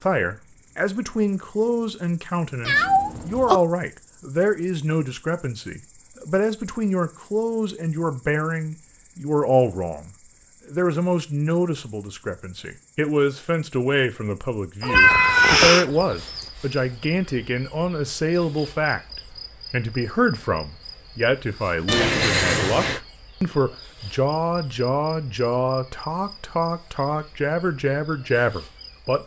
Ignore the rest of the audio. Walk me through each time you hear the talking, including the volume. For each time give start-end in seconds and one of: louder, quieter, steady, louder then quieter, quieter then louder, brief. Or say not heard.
0.0-29.2 steady.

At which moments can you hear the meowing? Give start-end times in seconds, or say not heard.
2.6-3.6, 14.8-16.4, 21.9-23.0.